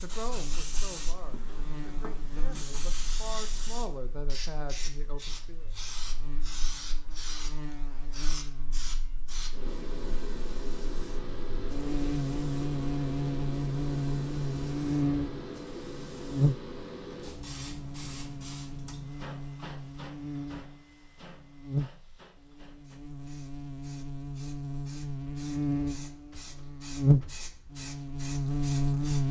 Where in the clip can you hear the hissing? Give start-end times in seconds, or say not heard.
0.0-29.2.